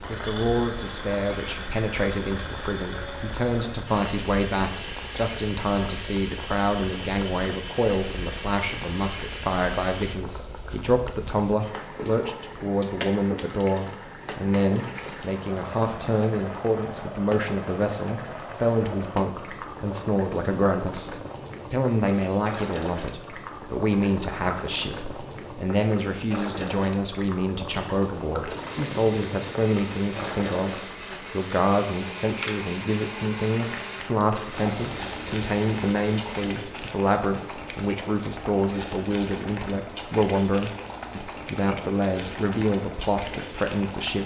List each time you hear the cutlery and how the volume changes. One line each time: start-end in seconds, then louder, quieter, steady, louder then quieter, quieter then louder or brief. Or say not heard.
not heard.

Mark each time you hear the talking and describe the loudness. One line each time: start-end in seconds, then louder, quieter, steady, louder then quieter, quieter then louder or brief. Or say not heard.
0.1-44.2 steady.